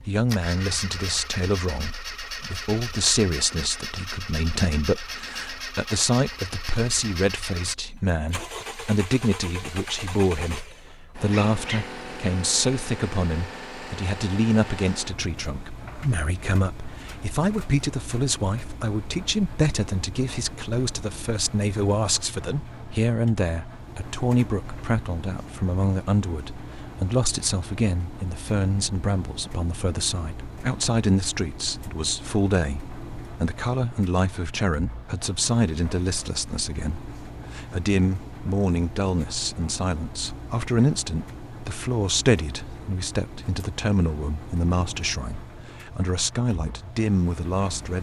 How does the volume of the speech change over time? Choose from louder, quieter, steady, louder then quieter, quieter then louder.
steady.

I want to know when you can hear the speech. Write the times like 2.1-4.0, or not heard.
0.0-47.9.